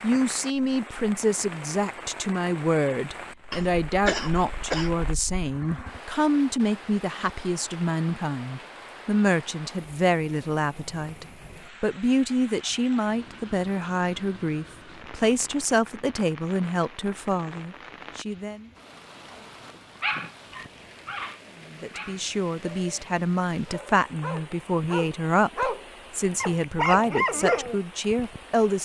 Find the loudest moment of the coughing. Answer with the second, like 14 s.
4 s.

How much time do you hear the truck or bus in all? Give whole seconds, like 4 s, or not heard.
not heard.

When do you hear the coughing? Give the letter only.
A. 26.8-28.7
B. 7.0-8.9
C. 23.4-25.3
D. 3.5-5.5
D.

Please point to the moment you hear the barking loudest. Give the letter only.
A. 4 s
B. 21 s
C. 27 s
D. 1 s
C.